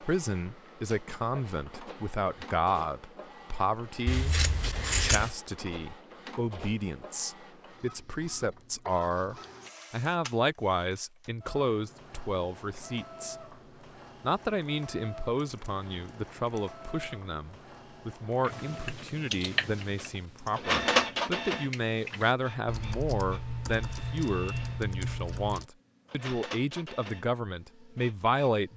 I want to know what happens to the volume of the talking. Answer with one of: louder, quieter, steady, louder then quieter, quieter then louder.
steady.